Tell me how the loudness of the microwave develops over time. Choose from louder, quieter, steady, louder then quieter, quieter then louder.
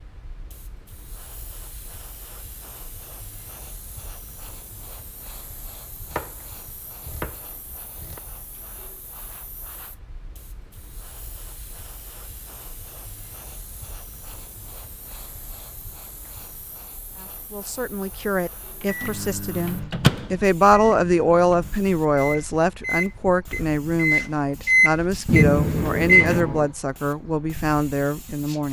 quieter then louder.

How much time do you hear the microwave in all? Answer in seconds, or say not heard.
8 s.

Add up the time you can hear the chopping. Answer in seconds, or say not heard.
2 s.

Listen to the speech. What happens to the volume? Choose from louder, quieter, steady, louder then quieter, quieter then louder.
louder then quieter.